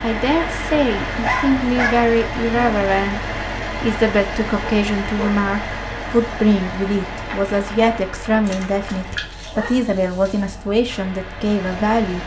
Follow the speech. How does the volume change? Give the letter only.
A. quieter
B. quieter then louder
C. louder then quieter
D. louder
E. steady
E.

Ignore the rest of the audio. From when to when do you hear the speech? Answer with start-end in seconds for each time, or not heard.
0.0-12.2.